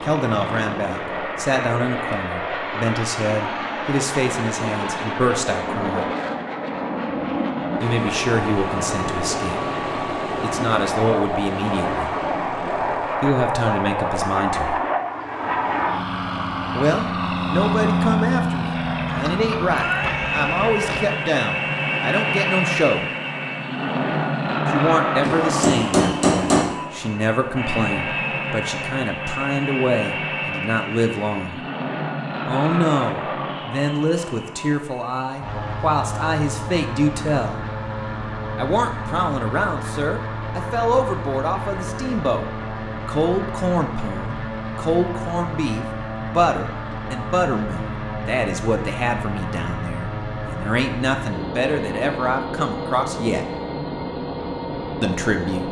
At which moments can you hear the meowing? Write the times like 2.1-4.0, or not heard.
19.1-21.1.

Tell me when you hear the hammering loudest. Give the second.
26 s.